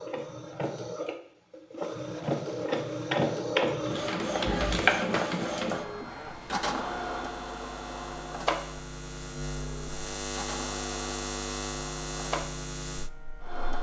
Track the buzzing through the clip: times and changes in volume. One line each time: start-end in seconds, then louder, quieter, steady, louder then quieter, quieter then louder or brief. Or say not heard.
6.2-13.4 louder.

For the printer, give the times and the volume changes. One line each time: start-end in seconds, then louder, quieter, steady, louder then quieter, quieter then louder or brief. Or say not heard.
0.0-13.7 louder then quieter.